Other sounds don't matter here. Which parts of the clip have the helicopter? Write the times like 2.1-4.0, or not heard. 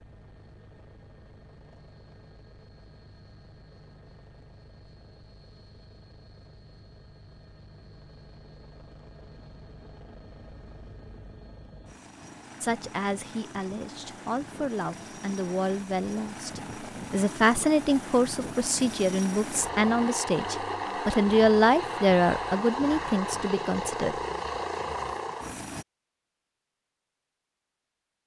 0.0-25.9.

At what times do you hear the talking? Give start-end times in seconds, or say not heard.
12.6-24.1.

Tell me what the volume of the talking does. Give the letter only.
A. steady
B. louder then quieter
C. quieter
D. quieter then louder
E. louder
E.